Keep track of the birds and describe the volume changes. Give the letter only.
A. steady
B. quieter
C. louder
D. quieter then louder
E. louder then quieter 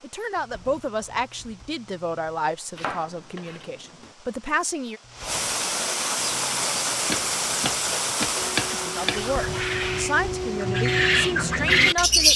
C.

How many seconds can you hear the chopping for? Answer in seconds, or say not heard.
4 s.